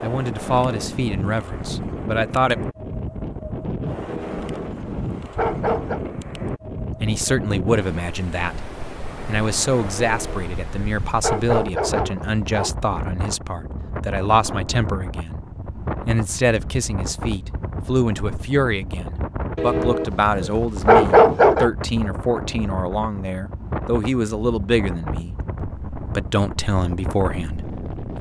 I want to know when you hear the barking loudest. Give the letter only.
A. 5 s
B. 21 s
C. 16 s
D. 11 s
B.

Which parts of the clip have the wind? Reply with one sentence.
The wind can be heard from 0.0 to 28.1 s.